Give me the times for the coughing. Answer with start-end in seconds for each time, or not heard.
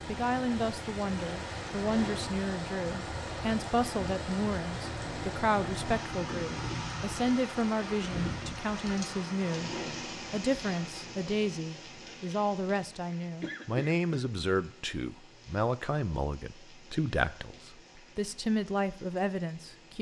13.4-14.2.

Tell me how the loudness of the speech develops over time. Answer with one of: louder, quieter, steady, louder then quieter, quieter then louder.
steady.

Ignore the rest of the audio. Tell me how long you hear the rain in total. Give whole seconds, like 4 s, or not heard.
20 s.